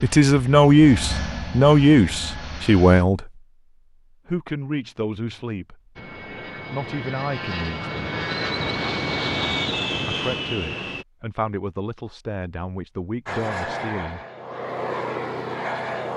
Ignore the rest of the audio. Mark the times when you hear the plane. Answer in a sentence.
The plane can be heard from 0.0 to 3.0 s, from 6.0 to 11.1 s and from 13.2 to 16.1 s.